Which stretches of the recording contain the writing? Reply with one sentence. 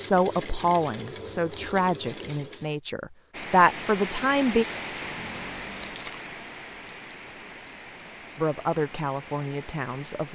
You can't hear the writing here.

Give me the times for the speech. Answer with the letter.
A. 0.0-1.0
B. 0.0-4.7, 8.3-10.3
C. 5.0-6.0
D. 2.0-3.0
B.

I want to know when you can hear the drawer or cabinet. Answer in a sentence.
You can hear the drawer or cabinet from 5.0 to 6.0 s.